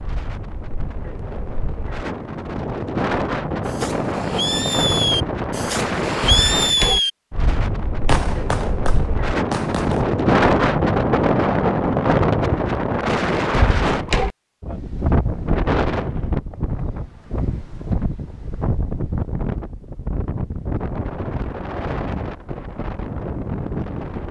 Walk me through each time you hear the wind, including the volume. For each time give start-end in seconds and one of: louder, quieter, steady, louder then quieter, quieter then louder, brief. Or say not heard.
0.0-24.2 louder then quieter.